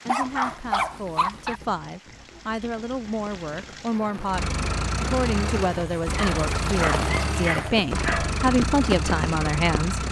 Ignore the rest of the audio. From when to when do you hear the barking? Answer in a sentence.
You can hear the barking from 0.1 to 1.6 s and from 6.2 to 8.3 s.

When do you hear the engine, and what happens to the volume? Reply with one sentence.
The engine can be heard from 0.1 to 10.0 s, getting louder.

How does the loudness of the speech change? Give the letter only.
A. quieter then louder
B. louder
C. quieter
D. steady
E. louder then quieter
B.